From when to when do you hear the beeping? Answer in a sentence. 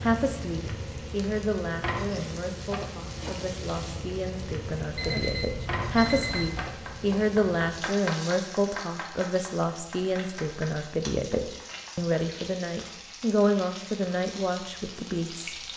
The beeping can be heard from 5.0 to 6.7 s.